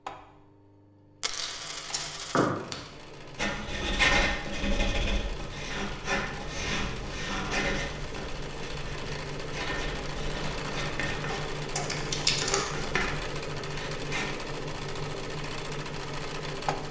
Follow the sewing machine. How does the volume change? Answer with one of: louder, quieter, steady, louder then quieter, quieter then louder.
louder.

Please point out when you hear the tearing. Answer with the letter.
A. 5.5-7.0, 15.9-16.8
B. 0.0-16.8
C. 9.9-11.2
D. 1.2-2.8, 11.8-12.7
D.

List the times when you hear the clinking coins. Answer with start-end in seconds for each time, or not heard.
1.2-2.5.